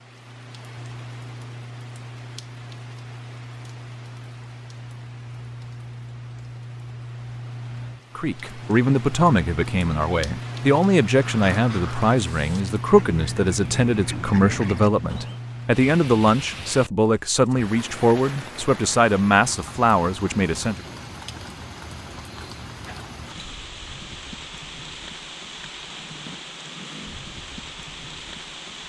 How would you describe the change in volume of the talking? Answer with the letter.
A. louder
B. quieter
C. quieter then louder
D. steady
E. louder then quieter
D.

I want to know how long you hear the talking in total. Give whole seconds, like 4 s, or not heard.
13 s.